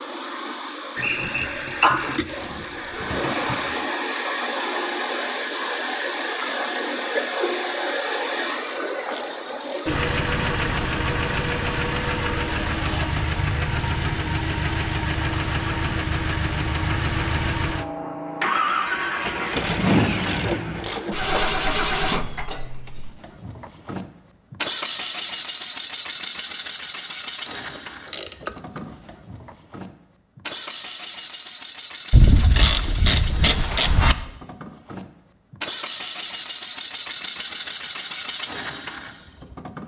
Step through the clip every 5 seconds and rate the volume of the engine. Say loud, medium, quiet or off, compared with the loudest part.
loud, loud, loud, loud, loud, medium, medium, medium.